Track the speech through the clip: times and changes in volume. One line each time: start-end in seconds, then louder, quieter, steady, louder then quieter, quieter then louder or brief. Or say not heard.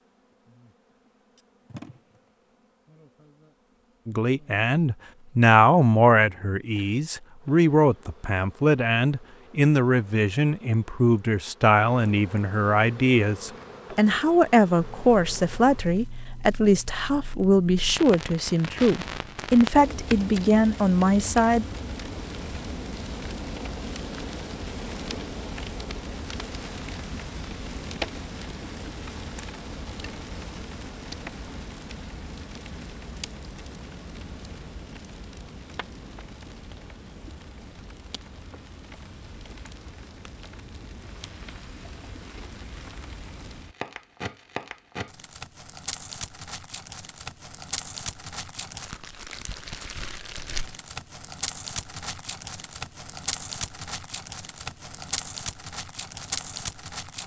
4.0-21.6 steady.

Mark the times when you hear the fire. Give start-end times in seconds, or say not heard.
14.8-57.2.